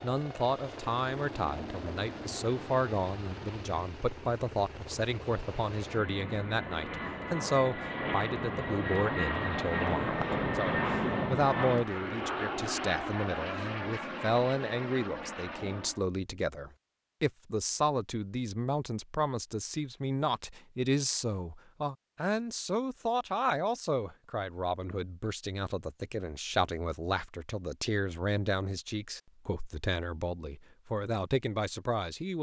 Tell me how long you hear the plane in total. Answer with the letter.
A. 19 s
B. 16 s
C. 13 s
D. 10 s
B.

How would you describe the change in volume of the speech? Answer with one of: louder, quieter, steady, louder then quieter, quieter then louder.
steady.